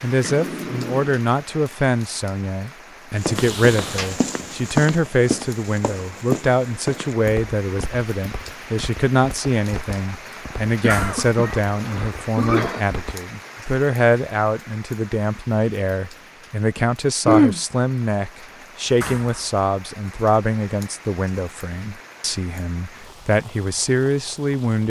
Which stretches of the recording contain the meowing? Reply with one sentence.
You can't hear the meowing here.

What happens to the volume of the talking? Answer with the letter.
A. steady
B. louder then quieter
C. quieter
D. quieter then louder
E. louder
A.